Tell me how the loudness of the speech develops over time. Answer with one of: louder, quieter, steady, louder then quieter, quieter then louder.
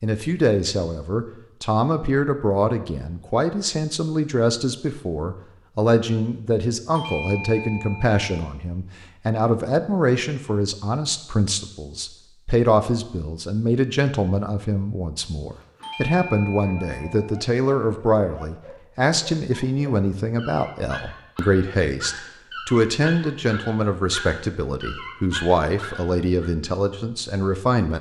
steady.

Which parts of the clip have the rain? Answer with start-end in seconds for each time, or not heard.
not heard.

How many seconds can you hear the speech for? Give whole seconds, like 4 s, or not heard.
28 s.